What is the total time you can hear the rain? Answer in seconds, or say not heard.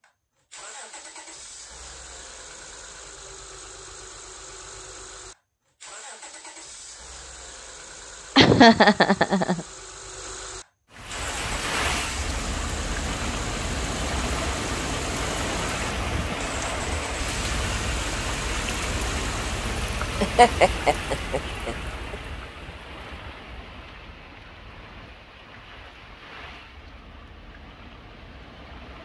18 s.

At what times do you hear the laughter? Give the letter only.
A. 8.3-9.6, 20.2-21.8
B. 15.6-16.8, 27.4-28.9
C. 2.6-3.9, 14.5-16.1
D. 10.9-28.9
A.